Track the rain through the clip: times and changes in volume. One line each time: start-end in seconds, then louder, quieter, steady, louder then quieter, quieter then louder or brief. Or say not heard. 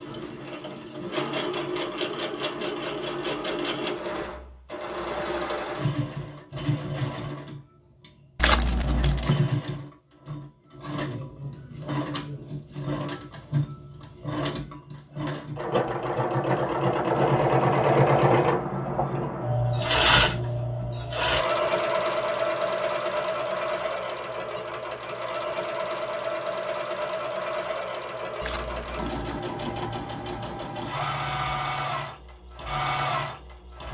not heard.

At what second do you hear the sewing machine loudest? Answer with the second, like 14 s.
18 s.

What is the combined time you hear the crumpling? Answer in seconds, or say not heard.
2 s.